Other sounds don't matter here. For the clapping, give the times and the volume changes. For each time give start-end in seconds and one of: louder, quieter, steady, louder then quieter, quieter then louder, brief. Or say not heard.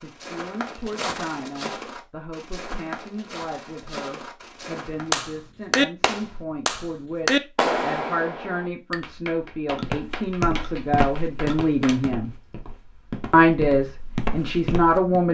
5.1-12.1 quieter.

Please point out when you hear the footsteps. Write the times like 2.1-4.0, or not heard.
0.0-5.2, 9.8-15.2.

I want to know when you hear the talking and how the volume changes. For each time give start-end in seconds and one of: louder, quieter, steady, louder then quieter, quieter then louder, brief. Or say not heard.
0.0-12.3 louder
13.3-15.2 brief.